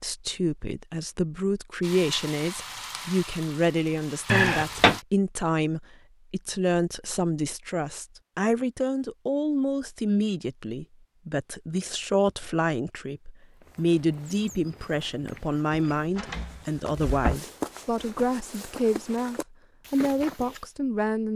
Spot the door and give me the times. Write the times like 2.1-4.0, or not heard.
4.3-5.0, 15.7-17.4.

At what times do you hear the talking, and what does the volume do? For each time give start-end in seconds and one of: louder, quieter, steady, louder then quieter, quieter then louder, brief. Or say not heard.
0.0-21.3 steady.